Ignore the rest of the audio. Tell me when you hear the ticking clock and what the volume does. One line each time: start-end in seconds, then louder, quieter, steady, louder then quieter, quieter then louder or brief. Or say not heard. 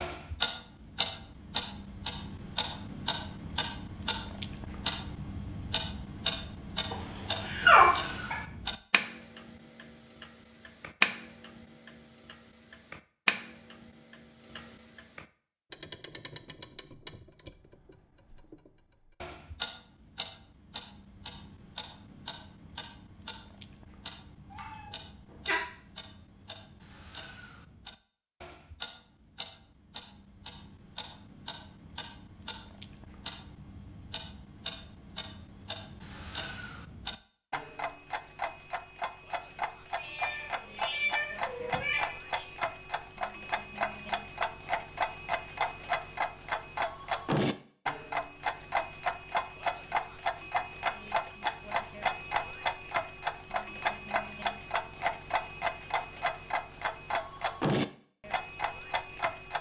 0.0-59.5 quieter then louder.